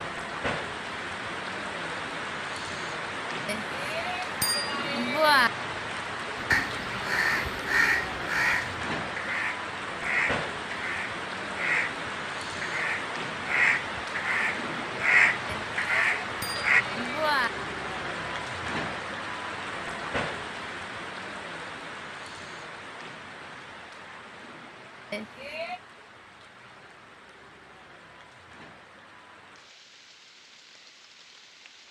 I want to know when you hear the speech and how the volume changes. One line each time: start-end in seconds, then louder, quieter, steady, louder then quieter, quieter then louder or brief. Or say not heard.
not heard.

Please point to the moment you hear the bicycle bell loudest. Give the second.
5 s.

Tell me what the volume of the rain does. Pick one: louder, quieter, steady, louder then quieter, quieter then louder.
quieter.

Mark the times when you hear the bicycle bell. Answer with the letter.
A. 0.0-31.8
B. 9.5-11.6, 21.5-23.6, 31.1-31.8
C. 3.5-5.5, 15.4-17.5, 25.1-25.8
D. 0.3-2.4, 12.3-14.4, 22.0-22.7
C.